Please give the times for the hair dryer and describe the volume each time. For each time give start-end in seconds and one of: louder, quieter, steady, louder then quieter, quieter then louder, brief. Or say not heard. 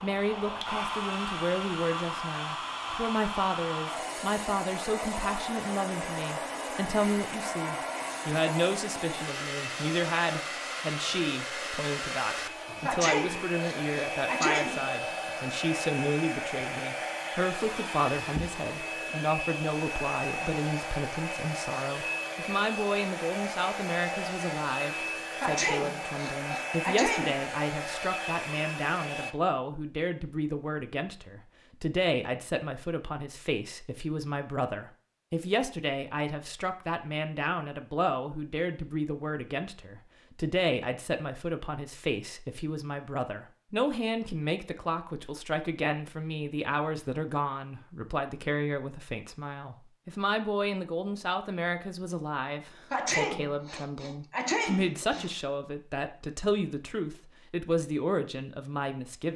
0.0-29.4 steady.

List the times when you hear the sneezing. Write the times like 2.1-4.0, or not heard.
12.8-14.9, 25.4-27.4, 52.9-55.4.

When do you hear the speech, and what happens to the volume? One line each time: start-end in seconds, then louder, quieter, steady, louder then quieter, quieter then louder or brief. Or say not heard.
0.0-59.3 steady.